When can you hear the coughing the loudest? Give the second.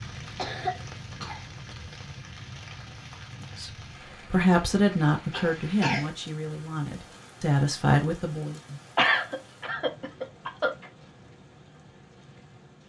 9 s.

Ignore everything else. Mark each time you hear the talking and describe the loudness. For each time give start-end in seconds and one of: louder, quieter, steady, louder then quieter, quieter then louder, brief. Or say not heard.
3.5-8.6 quieter then louder.